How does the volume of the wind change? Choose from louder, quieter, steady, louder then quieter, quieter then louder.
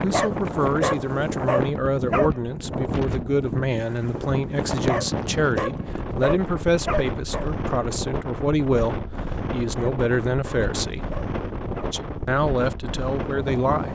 steady.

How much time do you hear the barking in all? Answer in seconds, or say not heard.
7 s.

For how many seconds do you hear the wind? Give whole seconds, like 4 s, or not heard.
14 s.